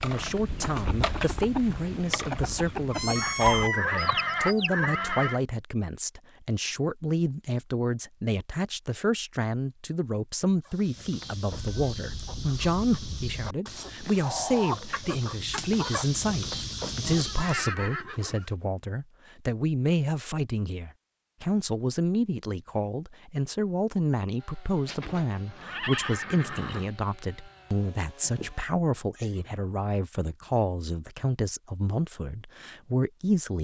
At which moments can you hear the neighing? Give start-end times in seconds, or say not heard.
3.7-5.4, 17.1-18.5, 24.8-26.9.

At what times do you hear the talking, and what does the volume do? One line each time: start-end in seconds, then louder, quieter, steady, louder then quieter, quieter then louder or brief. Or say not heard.
0.0-33.6 steady.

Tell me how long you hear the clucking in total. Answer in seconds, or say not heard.
12 s.